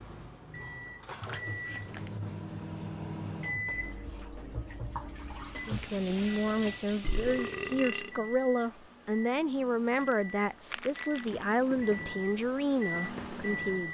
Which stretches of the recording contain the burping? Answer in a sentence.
The burping can be heard from 7.0 to 8.1 s.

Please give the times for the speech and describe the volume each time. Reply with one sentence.
You can hear the speech from 5.5 to 13.8 s, at a steady volume.